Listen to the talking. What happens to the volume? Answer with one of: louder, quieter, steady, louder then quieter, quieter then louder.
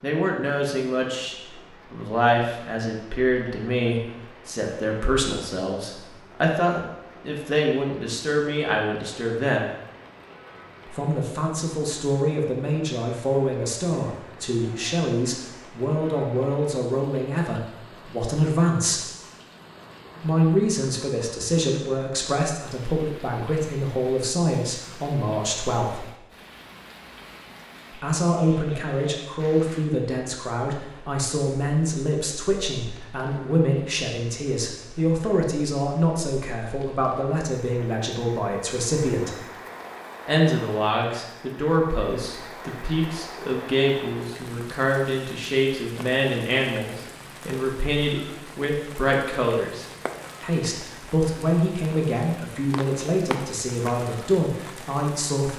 steady.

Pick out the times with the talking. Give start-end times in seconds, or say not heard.
0.0-9.7, 10.8-19.1, 20.2-26.1, 27.9-39.4, 40.2-55.5.